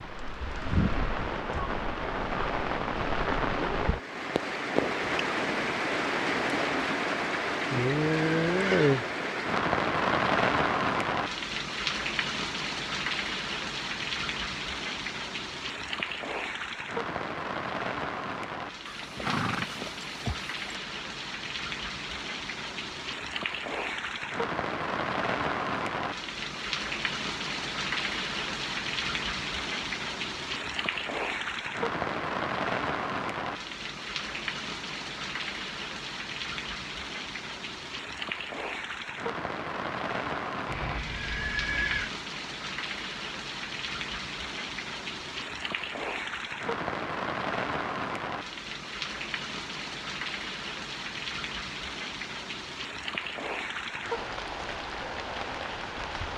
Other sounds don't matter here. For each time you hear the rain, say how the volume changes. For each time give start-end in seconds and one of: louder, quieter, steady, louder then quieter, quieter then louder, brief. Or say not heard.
0.0-56.3 quieter.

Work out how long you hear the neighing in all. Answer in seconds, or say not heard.
4 s.